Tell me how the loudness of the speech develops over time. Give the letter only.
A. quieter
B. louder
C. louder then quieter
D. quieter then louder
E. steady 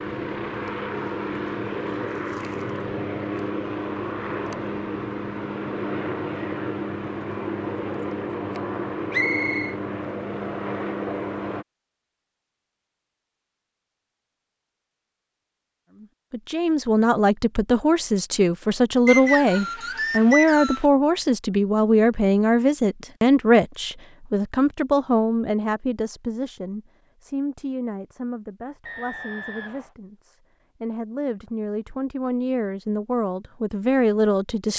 D.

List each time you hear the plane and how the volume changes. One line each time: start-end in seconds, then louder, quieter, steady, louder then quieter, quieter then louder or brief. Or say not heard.
0.0-11.7 steady.